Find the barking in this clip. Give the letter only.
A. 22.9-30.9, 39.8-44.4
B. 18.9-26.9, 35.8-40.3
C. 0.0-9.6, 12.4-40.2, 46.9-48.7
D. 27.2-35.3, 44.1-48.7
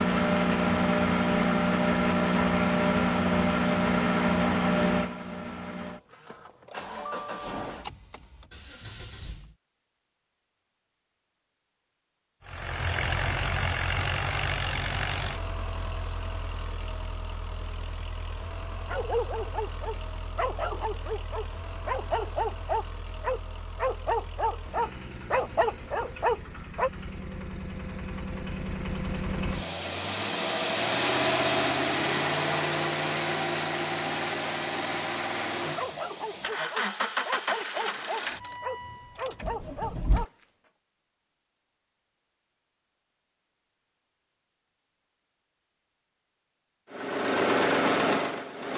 B.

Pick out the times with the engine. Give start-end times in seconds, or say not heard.
0.0-9.6, 12.4-40.2, 46.9-48.7.